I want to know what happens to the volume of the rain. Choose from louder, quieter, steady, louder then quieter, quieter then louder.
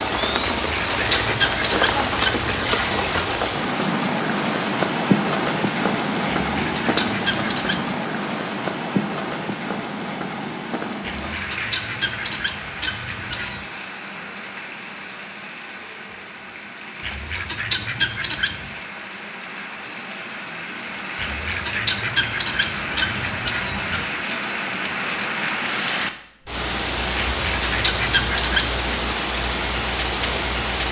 quieter then louder.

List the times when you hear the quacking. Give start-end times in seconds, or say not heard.
0.4-3.2, 6.4-7.9, 11.0-13.7, 17.0-18.9, 21.1-24.1, 27.1-28.7.